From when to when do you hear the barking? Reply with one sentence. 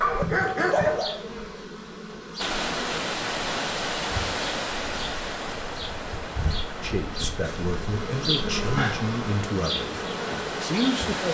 You can hear the barking from 0.0 to 1.4 s.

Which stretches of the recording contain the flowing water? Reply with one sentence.
You can hear the flowing water from 2.4 to 11.3 s.